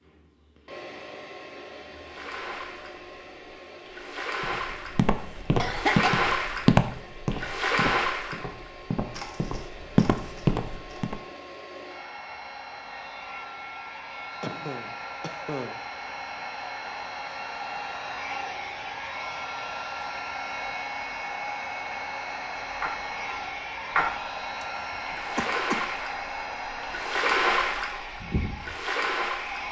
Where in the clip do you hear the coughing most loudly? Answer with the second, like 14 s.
6 s.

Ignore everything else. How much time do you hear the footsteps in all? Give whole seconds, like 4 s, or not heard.
7 s.